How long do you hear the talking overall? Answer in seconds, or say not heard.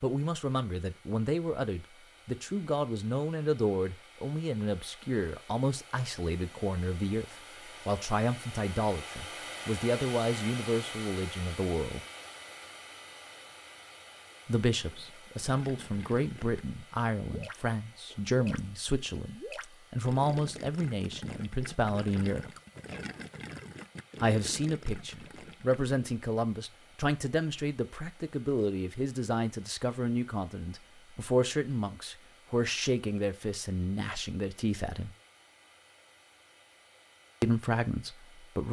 32 s.